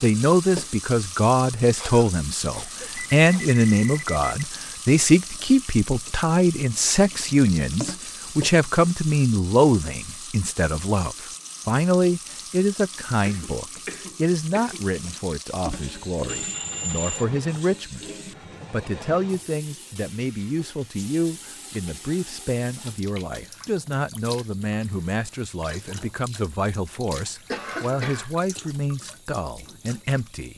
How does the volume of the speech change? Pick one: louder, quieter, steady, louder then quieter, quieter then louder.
quieter.